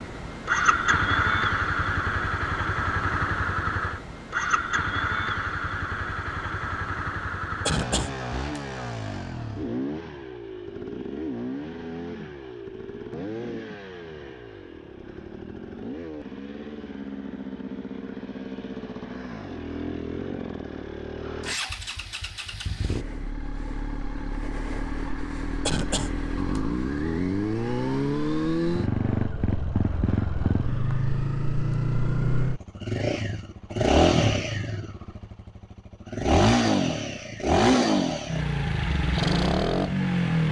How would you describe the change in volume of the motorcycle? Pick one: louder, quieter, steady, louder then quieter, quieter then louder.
quieter then louder.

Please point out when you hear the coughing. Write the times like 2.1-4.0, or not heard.
7.7-8.6, 25.6-26.6.